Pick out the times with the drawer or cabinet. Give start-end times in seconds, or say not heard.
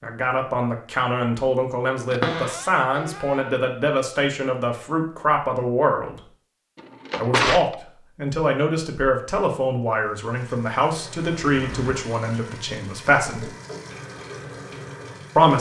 2.1-3.4, 6.8-7.8, 11.4-11.9.